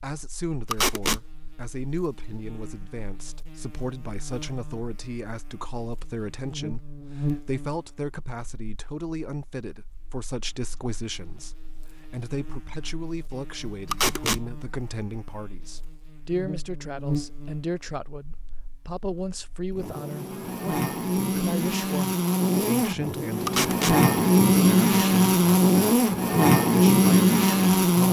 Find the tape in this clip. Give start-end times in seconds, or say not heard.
0.7-1.2, 13.9-14.4, 23.4-23.9.